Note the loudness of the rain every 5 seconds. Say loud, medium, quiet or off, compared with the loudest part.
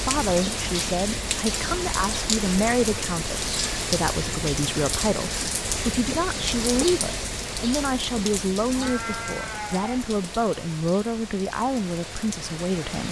loud, loud, medium.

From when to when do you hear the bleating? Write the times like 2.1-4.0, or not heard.
8.7-10.1.